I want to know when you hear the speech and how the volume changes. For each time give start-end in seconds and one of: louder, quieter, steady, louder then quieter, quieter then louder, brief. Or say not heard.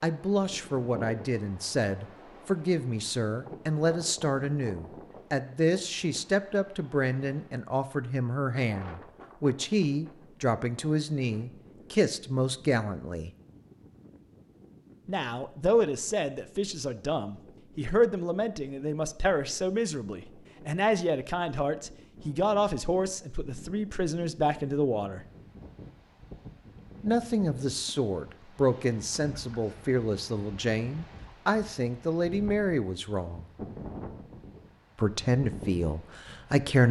0.0-13.3 steady
15.1-25.2 steady
27.0-33.5 steady
35.0-36.8 brief.